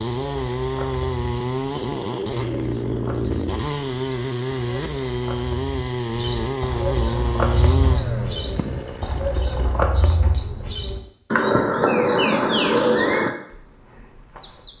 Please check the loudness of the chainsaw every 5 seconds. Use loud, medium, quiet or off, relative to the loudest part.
loud, loud, off.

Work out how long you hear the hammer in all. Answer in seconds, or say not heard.
not heard.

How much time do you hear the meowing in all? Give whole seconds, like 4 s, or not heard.
2 s.